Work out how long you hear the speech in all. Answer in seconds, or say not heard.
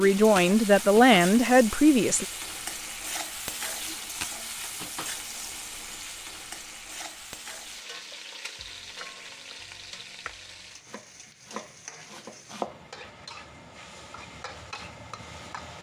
2 s.